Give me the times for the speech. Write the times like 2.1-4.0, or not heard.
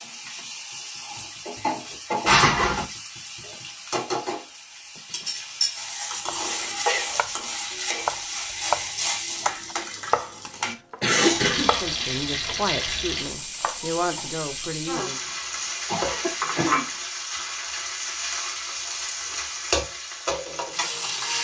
11.6-15.2.